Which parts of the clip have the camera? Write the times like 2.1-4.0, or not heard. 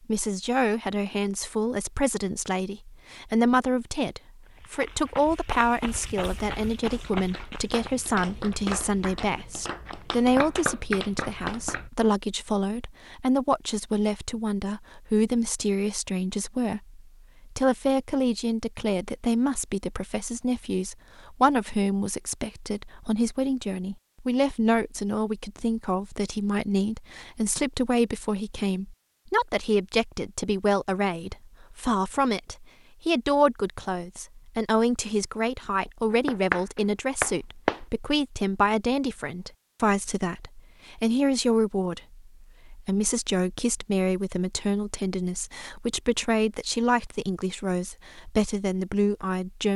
not heard.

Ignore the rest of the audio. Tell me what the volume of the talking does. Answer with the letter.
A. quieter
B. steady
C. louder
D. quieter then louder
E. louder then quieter
B.